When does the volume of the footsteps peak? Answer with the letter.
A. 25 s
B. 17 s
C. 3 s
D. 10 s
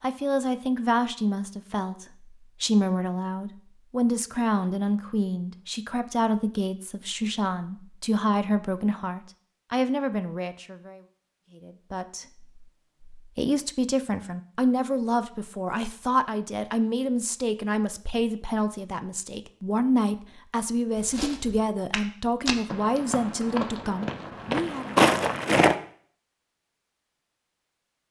A.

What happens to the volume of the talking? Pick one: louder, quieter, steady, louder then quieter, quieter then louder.
steady.